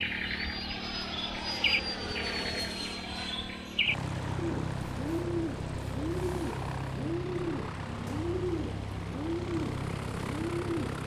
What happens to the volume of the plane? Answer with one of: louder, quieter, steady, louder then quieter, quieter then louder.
steady.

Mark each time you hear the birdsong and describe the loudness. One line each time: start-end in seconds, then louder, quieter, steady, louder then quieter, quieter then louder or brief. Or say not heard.
0.0-11.0 steady.